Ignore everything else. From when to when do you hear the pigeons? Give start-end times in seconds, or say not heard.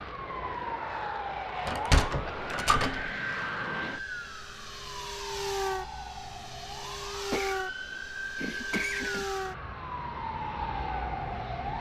not heard.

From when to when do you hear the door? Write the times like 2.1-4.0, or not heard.
1.6-3.1.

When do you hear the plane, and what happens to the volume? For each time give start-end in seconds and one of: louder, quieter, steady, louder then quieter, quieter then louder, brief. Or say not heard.
0.0-11.7 steady.